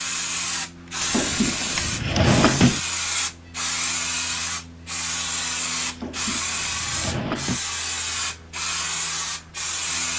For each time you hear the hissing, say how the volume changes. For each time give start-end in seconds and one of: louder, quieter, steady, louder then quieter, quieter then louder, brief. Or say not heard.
0.0-10.1 steady.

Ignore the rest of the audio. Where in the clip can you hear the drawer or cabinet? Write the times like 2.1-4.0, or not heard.
1.0-2.8, 5.8-7.6.